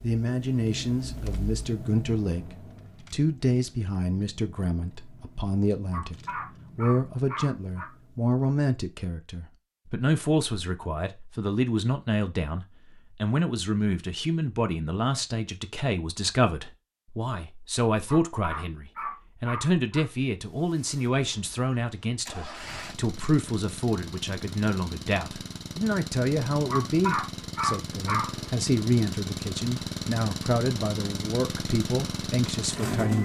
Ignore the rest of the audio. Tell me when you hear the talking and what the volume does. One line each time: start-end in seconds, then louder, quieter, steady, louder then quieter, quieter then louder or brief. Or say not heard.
0.0-33.1 steady.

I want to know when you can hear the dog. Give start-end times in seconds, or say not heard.
5.9-7.8, 18.1-20.1, 26.6-28.3.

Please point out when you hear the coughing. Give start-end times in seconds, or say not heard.
not heard.